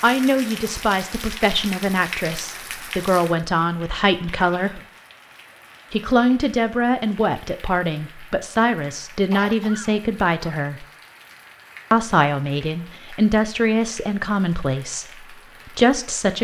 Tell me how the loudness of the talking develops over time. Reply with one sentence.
The volume of the talking stays about the same.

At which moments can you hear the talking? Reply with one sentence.
You can hear the talking from 0.0 to 4.8 s, from 5.9 to 10.8 s and from 11.9 to 16.3 s.